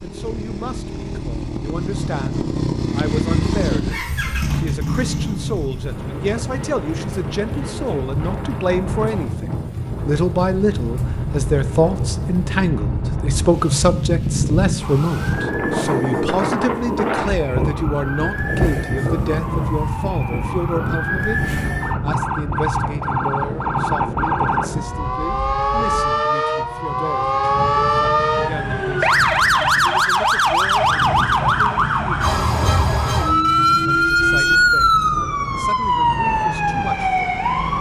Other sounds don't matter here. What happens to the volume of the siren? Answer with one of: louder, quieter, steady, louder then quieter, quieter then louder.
louder.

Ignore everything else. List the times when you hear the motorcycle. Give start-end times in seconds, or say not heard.
0.0-12.6.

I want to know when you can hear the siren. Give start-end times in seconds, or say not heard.
14.8-37.7.